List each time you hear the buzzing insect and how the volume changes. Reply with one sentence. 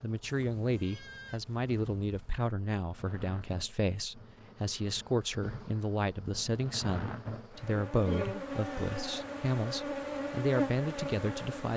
The buzzing insect can be heard from 0.0 to 11.7 s, getting louder.